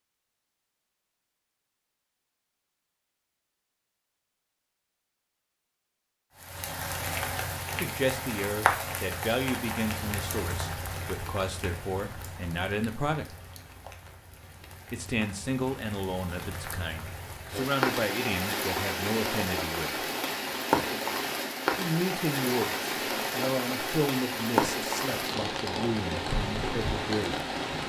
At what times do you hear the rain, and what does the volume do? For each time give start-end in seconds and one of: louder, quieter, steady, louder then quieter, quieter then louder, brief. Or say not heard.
6.3-27.8 quieter then louder.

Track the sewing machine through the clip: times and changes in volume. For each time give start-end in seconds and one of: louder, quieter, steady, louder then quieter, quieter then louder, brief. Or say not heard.
not heard.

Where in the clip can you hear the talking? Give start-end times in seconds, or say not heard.
7.8-13.3, 14.9-20.1, 21.8-27.4.